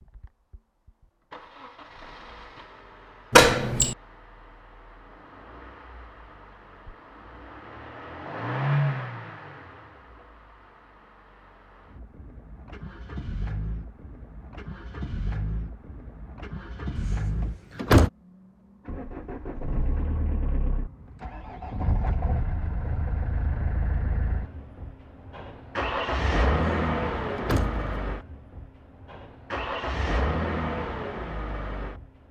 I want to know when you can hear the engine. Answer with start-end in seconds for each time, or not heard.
0.0-32.2.